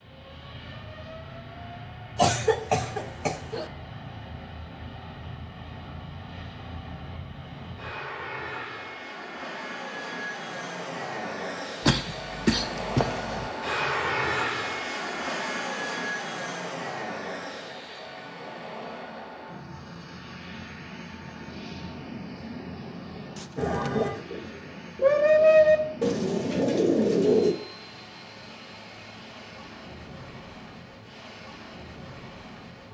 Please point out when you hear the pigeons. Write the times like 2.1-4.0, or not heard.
23.6-27.6.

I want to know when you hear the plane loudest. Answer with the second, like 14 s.
14 s.